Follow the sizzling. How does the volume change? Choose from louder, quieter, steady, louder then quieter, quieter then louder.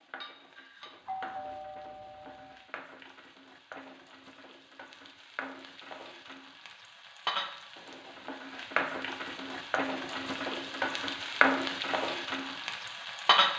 louder.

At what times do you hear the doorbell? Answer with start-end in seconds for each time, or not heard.
1.1-2.5.